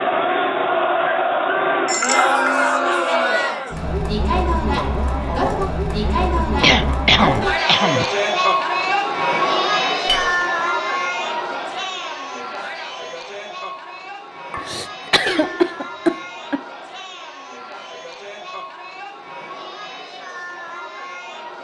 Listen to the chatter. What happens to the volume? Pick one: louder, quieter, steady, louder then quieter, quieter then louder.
quieter.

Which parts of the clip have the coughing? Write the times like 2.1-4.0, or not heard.
5.9-8.1, 14.6-16.6.